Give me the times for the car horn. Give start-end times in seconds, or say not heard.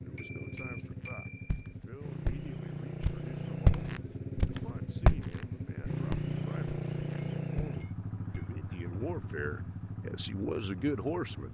not heard.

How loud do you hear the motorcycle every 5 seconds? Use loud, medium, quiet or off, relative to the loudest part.
loud, loud, medium.